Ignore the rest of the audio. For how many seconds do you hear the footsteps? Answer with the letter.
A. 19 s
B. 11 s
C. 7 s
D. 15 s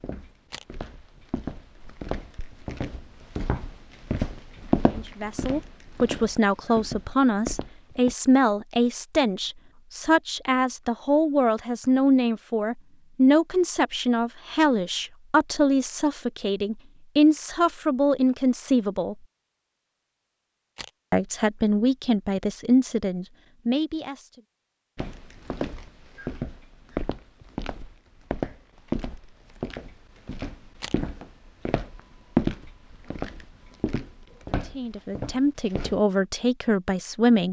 A.